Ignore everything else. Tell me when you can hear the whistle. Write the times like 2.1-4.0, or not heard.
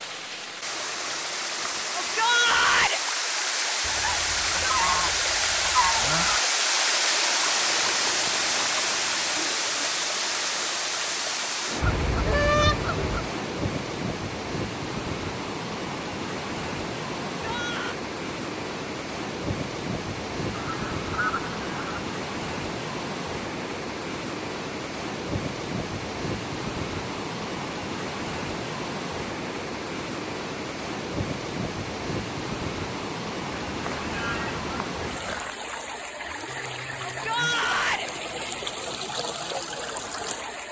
not heard.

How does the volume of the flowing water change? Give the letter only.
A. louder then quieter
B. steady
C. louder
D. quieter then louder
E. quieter
E.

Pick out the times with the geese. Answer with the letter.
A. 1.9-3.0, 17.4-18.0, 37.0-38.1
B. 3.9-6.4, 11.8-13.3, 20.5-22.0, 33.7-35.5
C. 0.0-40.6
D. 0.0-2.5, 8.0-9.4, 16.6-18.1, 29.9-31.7
B.